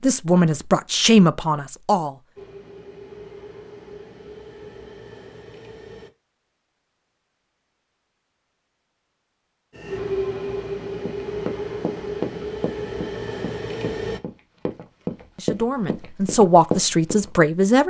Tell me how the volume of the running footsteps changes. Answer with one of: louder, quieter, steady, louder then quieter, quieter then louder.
quieter then louder.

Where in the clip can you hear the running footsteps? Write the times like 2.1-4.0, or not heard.
11.1-17.3.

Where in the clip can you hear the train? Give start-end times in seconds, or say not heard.
2.4-6.1, 9.7-14.2.